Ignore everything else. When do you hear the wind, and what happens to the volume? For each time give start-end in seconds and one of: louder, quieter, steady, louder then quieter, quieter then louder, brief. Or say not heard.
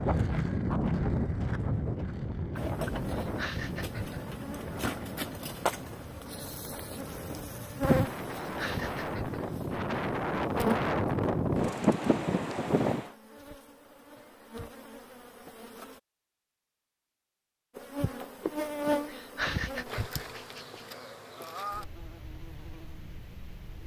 0.0-13.2 quieter then louder.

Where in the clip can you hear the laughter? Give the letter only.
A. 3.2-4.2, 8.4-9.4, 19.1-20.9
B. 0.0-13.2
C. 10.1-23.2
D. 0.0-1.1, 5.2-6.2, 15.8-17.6
A.